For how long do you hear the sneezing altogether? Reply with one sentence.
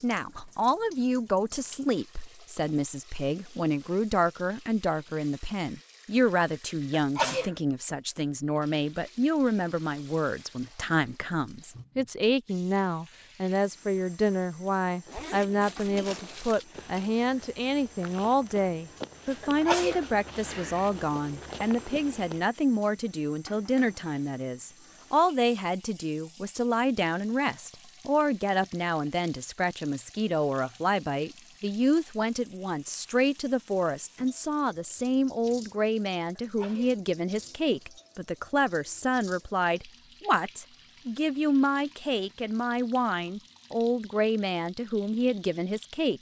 The sneezing can be heard for 3 seconds in total.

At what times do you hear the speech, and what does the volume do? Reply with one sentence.
You can hear the speech from 0.0 to 46.1 s, at a steady volume.